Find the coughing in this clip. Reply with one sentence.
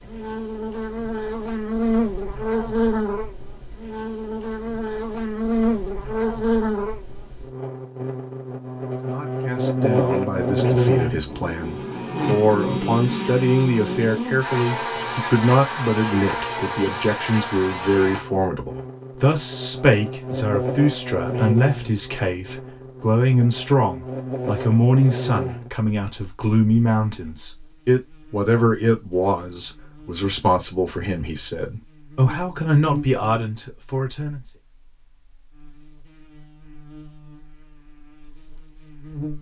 You can't hear the coughing here.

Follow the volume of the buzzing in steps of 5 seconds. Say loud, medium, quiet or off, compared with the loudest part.
loud, loud, loud, medium, medium, medium, medium, quiet.